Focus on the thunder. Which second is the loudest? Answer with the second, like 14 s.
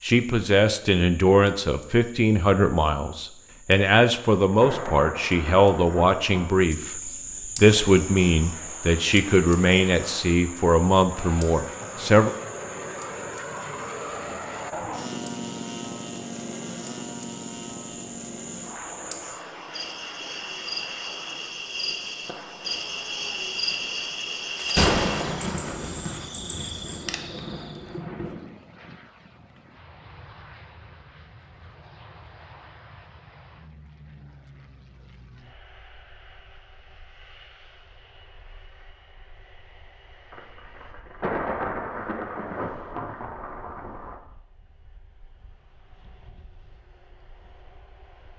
25 s.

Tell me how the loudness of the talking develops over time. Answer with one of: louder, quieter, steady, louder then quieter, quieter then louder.
steady.